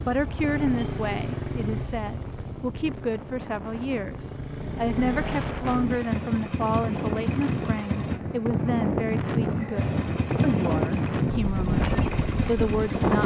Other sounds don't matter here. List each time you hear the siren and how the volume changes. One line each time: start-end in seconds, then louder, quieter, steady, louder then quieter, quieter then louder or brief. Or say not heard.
not heard.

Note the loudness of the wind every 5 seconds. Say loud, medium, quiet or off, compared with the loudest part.
quiet, loud, loud.